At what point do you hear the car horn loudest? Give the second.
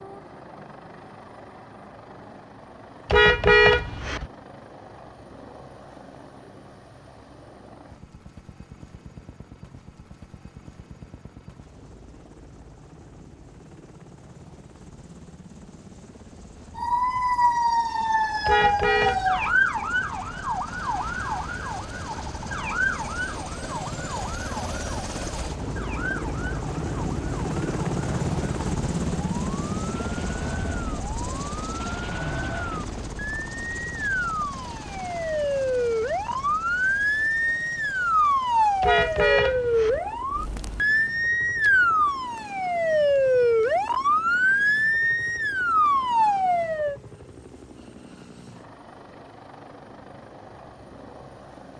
4 s.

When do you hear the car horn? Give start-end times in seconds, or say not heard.
3.0-4.2, 18.4-19.4, 38.8-40.0.